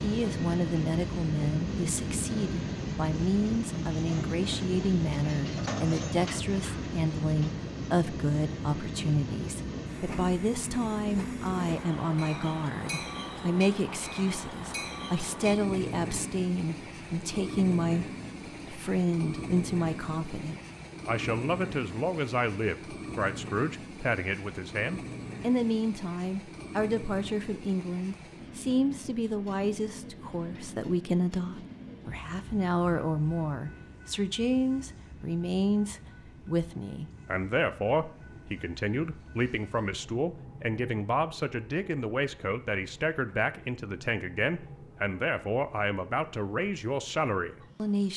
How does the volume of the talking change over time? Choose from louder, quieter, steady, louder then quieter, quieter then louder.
steady.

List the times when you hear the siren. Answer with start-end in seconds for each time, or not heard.
not heard.